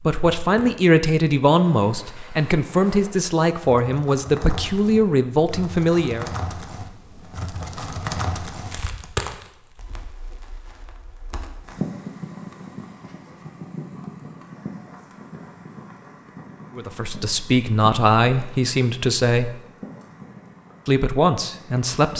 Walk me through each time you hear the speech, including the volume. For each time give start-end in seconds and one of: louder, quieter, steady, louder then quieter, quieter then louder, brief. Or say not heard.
0.0-6.3 steady
16.8-19.6 brief
20.9-22.1 brief.